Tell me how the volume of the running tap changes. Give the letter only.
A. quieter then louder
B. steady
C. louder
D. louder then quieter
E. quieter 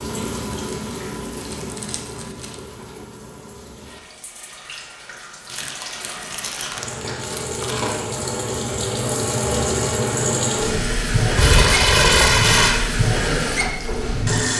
A.